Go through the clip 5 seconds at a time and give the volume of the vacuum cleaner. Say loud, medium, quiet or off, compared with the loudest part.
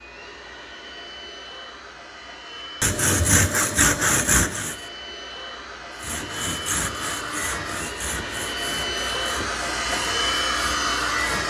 quiet, medium, loud.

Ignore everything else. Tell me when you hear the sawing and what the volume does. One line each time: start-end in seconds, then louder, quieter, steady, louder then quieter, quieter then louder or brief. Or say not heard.
2.8-4.8 brief
6.0-11.2 quieter.